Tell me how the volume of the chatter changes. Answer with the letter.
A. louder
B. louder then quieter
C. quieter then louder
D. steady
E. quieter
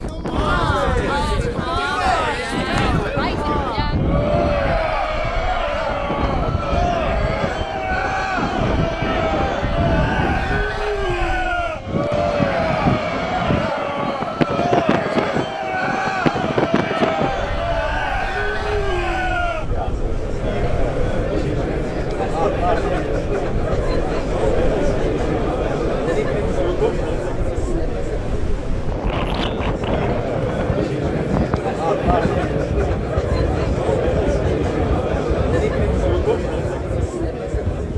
D.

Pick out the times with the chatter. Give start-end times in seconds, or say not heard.
0.1-37.9.